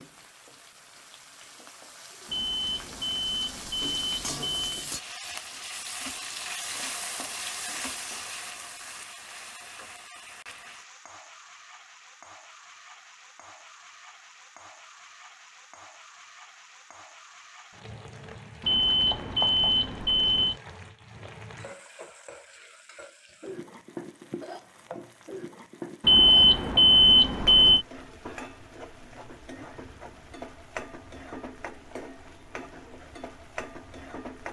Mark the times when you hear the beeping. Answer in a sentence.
The beeping can be heard from 2.2 to 4.8 s, from 18.6 to 20.6 s and from 26.0 to 27.9 s.